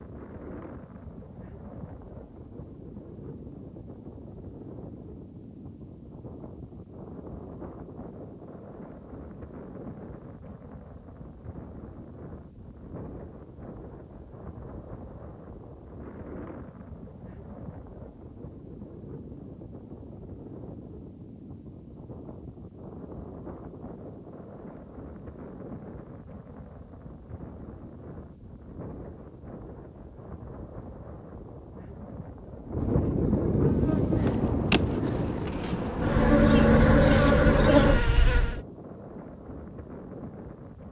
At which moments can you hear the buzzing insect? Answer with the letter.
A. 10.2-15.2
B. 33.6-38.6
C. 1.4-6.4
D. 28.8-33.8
B.